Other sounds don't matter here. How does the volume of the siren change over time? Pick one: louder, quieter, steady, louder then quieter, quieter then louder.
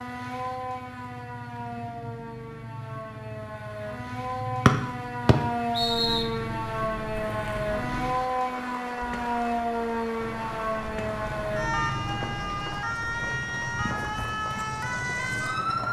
louder.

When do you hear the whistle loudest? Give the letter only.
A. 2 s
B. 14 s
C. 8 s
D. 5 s
D.